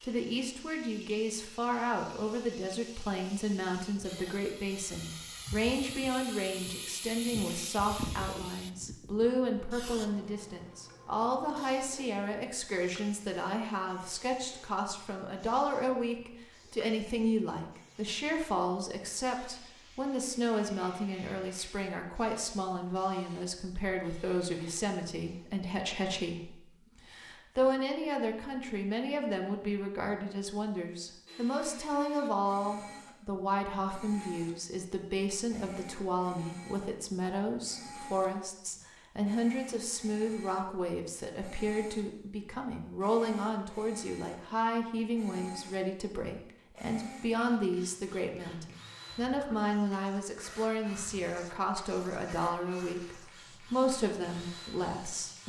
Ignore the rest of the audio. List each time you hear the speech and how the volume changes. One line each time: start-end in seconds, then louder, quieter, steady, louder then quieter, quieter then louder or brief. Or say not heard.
0.0-55.4 steady.